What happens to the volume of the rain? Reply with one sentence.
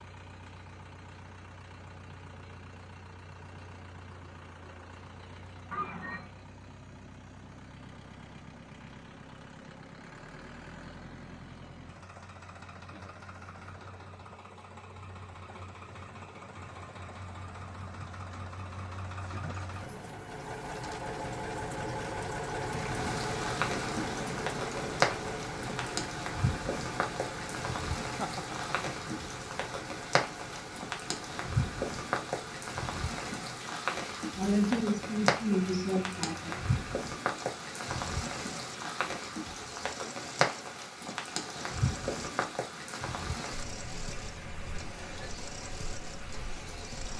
The loudness of the rain goes down.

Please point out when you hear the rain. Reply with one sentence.
You can hear the rain from 22.8 to 47.1 s.